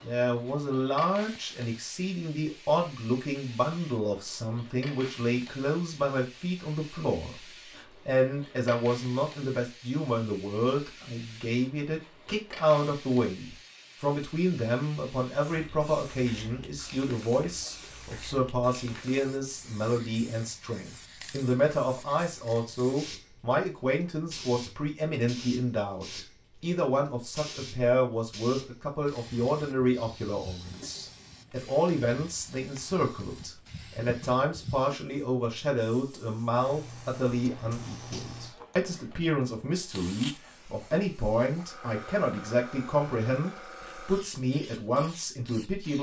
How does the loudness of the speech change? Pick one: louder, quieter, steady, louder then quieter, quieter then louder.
steady.